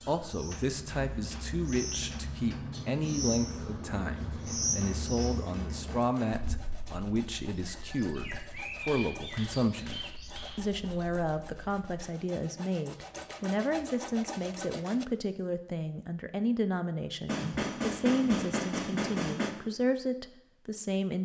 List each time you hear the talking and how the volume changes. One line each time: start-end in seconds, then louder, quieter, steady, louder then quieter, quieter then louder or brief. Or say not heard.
0.1-21.2 steady.